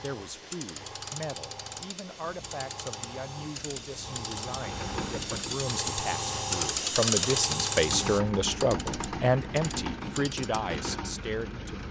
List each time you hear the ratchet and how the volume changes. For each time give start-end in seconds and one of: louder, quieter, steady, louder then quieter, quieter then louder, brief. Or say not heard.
0.1-10.7 louder then quieter.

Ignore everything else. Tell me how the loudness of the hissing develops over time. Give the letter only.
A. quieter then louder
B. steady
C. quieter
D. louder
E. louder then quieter
D.